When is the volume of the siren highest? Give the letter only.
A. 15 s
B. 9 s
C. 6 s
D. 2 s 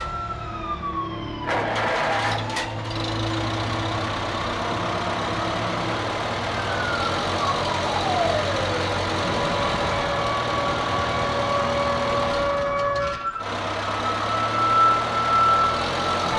A.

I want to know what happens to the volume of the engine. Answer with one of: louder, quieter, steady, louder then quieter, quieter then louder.
steady.